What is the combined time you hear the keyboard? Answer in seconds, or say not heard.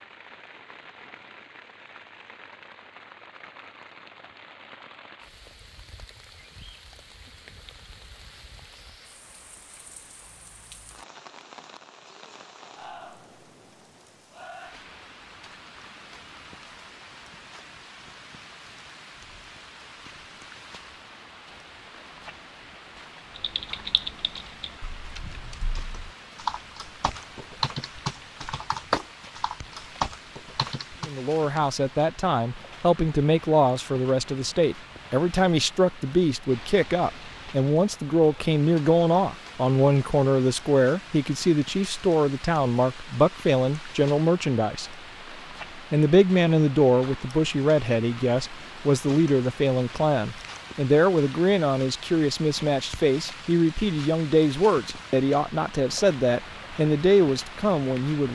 8 s.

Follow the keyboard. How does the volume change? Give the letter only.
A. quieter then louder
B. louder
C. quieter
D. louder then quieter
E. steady
B.